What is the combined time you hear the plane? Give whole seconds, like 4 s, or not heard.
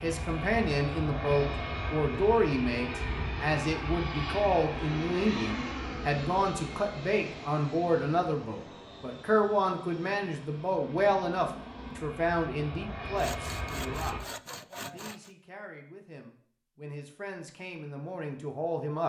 14 s.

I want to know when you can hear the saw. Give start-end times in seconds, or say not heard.
13.2-15.3.